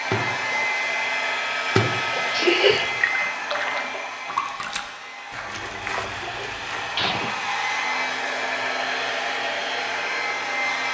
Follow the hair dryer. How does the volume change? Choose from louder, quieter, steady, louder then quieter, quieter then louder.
quieter then louder.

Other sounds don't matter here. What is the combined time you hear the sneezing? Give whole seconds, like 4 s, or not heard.
2 s.